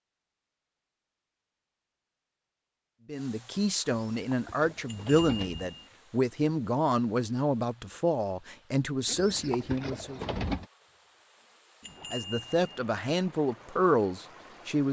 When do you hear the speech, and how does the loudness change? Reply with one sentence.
You can hear the speech from 3.0 to 10.2 s, at a steady volume; and briefly from 12.1 to 14.8 s.